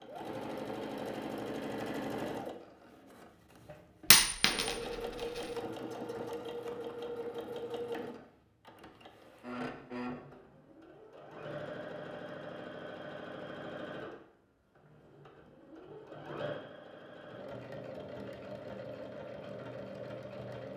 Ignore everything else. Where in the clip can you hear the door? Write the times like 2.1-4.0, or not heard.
not heard.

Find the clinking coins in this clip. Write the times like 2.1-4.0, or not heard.
4.1-5.4.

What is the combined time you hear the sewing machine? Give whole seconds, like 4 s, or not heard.
21 s.